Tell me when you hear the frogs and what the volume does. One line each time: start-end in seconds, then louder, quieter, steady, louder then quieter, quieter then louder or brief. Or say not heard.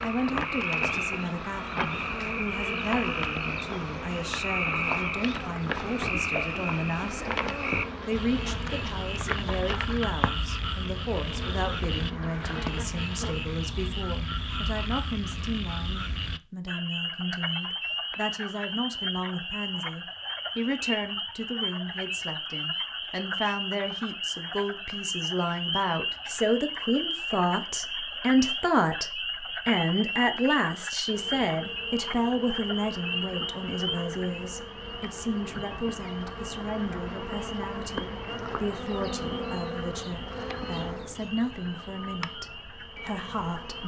0.0-43.8 quieter.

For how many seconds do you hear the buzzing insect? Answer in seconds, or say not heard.
26 s.